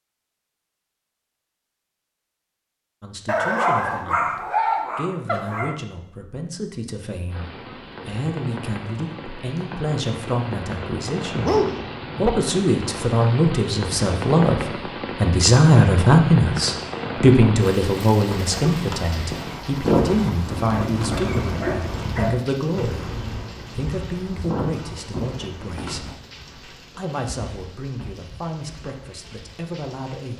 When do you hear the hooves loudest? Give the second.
20 s.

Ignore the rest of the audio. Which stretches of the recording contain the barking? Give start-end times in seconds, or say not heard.
3.2-5.8, 11.4-12.3, 20.6-22.4.